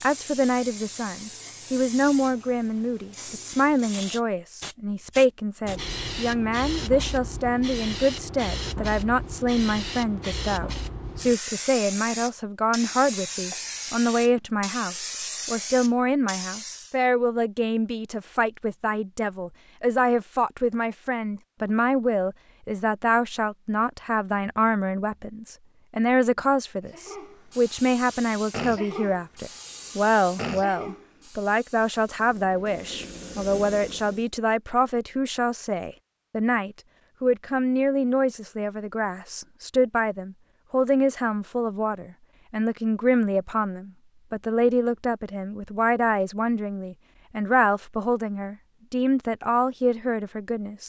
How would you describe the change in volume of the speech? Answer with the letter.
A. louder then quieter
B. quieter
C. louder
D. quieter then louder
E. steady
E.